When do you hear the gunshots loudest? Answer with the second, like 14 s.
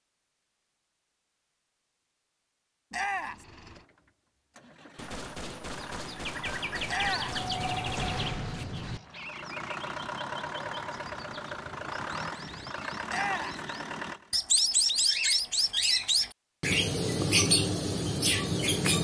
8 s.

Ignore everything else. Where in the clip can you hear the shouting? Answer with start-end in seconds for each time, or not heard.
2.9-3.5, 6.8-7.4, 13.1-13.6.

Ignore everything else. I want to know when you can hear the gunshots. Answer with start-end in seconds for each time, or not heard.
5.0-9.0.